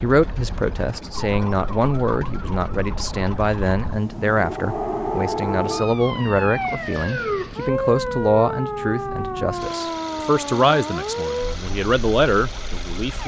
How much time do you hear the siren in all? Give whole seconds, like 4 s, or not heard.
13 s.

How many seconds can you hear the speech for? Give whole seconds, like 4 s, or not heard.
13 s.